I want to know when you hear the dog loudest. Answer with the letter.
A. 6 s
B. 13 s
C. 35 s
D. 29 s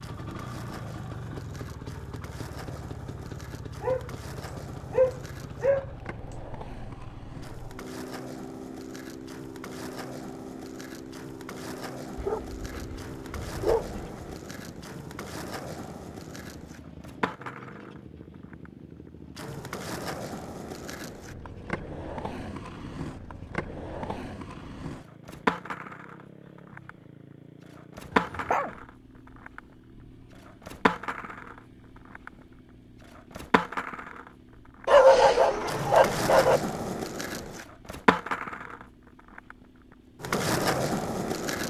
C.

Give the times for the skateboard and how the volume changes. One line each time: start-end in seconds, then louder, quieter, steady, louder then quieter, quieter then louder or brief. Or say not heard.
0.0-41.6 louder.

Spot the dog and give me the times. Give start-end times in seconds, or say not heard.
3.8-6.3, 12.2-14.3, 28.1-28.8, 34.9-36.6.